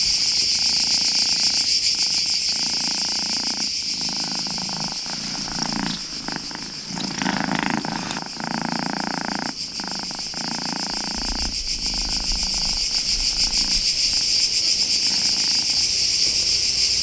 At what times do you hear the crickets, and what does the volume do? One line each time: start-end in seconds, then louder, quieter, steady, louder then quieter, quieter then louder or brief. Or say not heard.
0.0-16.9 quieter then louder.